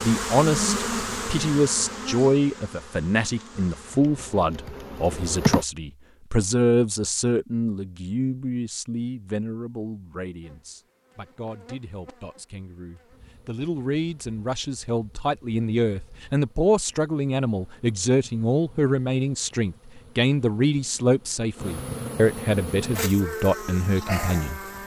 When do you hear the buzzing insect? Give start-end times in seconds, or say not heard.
0.0-5.7, 10.4-24.8.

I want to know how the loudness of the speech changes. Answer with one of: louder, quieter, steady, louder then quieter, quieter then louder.
quieter then louder.